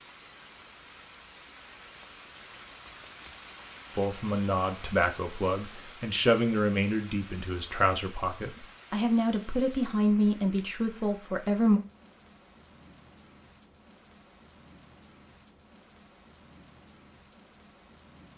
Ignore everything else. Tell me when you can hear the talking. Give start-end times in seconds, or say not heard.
4.0-11.8.